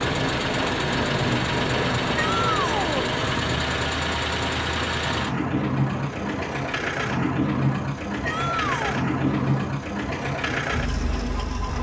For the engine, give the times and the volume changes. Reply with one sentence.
You can hear the engine from 0.0 to 11.7 s, at a steady volume.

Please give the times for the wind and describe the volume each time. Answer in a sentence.
The wind can be heard from 0.0 to 11.7 s, getting quieter.